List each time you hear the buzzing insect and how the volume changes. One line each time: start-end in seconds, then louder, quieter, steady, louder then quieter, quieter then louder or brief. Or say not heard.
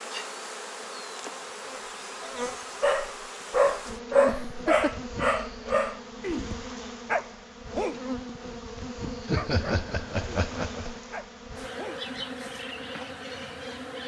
0.0-14.0 steady.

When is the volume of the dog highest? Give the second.
4 s.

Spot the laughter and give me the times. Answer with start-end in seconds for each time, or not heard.
4.2-5.0, 9.2-11.0.